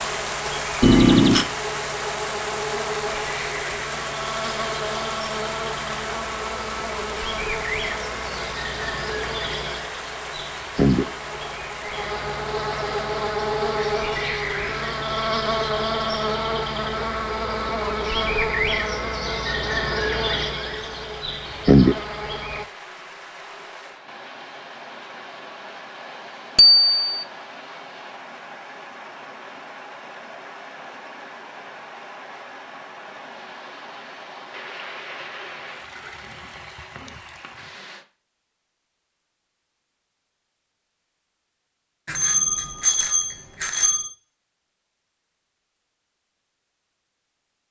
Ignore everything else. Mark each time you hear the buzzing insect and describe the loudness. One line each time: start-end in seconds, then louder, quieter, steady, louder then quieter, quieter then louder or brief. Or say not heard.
0.0-22.6 louder.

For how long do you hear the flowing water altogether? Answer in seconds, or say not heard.
38 s.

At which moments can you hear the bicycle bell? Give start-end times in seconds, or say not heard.
0.8-1.4, 26.6-27.2, 42.0-44.1.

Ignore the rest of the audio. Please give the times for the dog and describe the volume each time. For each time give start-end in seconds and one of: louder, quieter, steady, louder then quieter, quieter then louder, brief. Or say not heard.
not heard.